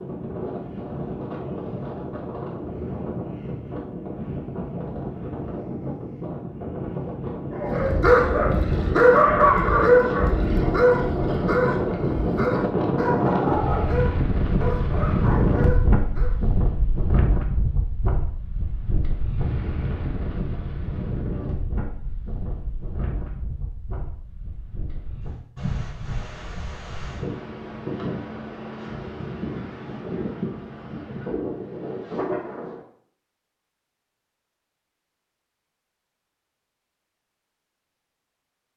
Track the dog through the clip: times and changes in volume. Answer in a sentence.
You can hear the dog from 7.5 to 16.4 s, getting quieter.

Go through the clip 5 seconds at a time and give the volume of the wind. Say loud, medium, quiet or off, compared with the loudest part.
medium, medium, loud, loud, medium, medium, medium, off.